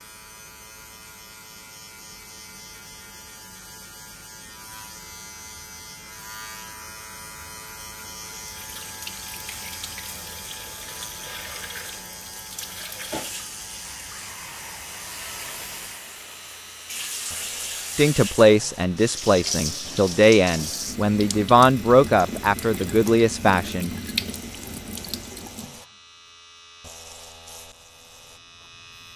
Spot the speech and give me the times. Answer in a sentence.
You can hear the speech from 17.9 to 23.9 s.